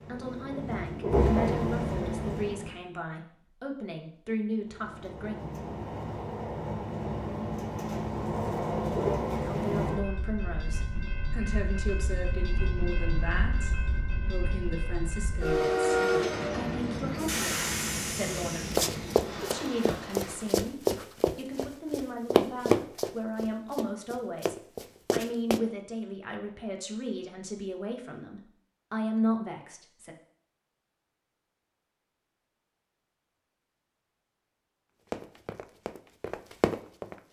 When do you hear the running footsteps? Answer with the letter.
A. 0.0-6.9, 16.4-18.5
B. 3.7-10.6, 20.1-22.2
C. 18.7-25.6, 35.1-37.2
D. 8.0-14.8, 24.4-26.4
C.